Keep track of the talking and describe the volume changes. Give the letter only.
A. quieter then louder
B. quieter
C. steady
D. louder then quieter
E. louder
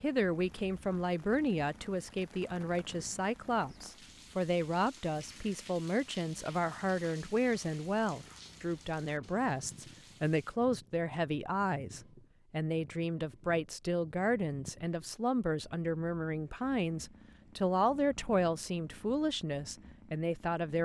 C.